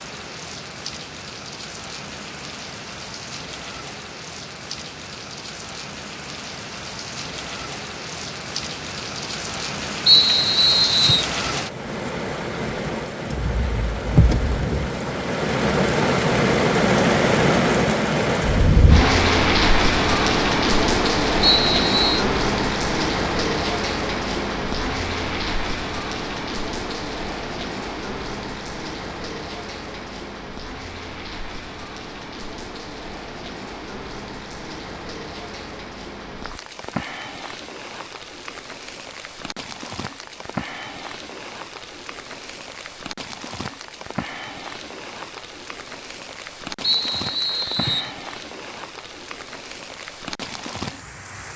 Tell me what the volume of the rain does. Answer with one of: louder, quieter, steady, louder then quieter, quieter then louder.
louder then quieter.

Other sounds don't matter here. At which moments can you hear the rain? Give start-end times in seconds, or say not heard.
0.0-51.5.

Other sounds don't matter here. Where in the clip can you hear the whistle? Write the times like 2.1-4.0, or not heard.
10.1-11.2, 21.4-22.2, 46.8-48.1.